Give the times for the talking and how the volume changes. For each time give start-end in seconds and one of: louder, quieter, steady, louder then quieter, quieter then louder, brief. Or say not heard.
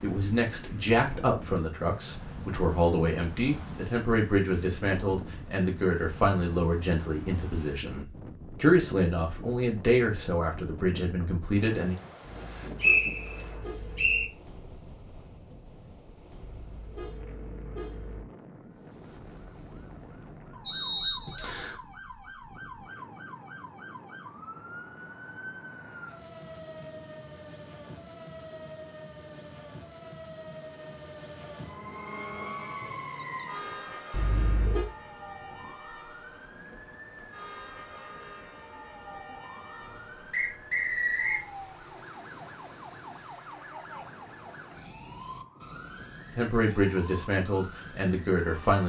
0.0-12.0 steady
46.4-48.8 brief.